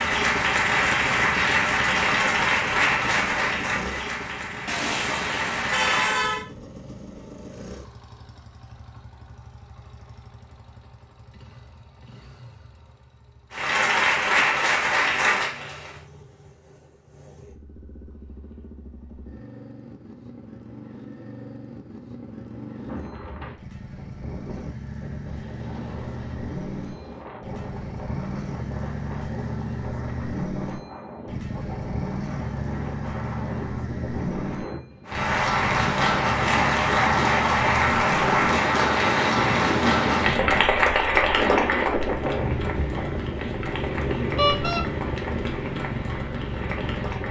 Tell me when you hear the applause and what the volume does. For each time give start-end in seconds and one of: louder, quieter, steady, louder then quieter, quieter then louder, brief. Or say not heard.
0.0-6.2 quieter
13.5-16.1 brief
35.0-47.2 quieter.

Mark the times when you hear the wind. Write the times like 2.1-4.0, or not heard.
22.8-47.2.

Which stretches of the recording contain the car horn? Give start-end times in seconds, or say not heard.
4.7-6.5, 44.4-44.9.